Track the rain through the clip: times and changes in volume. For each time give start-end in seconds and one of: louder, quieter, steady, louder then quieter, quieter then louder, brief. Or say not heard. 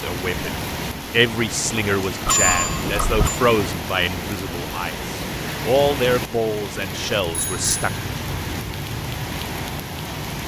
0.0-10.4 steady.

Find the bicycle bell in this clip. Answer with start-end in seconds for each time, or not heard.
2.2-3.4, 7.2-7.9.